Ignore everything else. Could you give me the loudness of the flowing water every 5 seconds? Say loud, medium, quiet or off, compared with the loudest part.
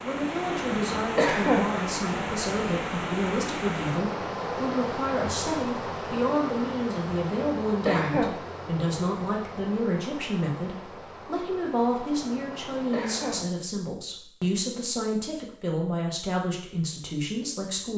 loud, loud, medium, off.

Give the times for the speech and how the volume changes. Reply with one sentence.
The speech can be heard from 0.0 to 17.9 s, at a steady volume.